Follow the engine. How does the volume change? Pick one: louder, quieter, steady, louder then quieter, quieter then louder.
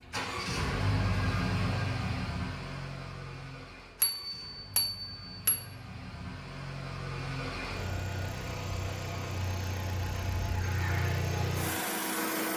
quieter then louder.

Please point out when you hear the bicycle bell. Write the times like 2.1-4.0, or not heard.
4.0-5.7.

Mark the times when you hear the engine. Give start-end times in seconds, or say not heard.
0.0-12.5.